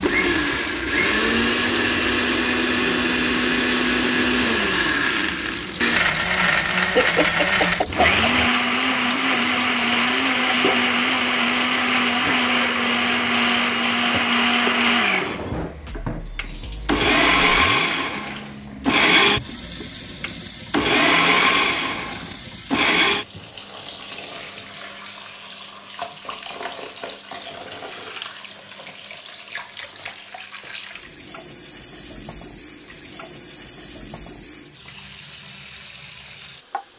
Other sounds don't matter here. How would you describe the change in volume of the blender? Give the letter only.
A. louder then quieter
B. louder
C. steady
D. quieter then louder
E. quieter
C.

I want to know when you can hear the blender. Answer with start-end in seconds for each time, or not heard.
0.0-23.2.